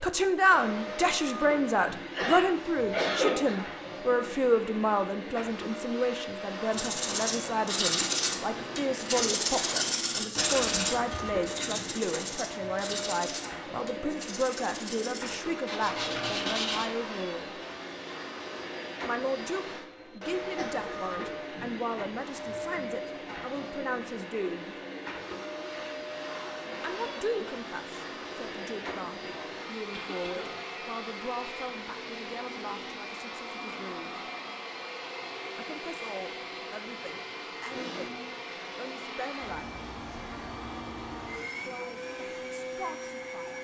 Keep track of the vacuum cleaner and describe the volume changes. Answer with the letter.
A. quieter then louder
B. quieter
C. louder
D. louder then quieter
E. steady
E.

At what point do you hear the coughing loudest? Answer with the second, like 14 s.
3 s.